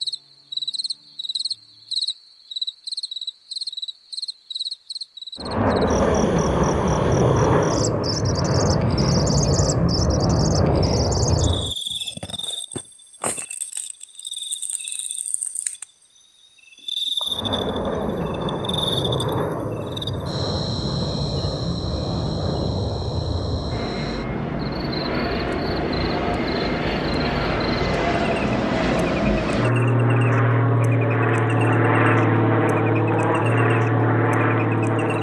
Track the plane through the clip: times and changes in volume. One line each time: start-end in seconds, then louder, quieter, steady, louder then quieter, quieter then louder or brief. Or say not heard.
5.3-11.8 steady
17.2-35.1 louder.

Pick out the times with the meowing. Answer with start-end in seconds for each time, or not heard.
not heard.